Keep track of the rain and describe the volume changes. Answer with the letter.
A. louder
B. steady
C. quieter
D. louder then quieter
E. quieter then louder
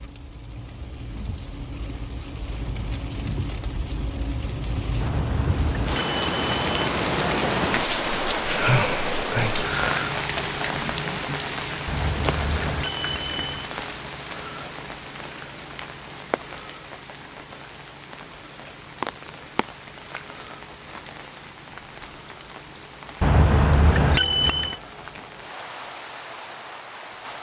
D.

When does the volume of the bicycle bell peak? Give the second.
24 s.